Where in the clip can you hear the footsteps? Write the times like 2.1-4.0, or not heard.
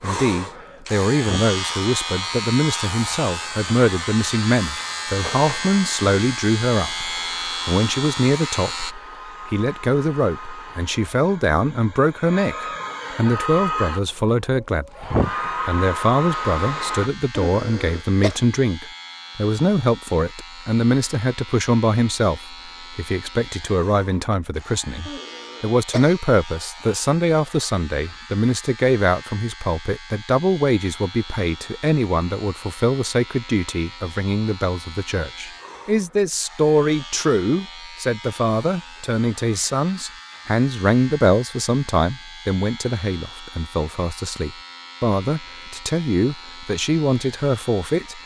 not heard.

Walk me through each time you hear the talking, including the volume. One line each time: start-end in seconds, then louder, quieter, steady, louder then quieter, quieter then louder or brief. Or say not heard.
0.0-48.2 steady.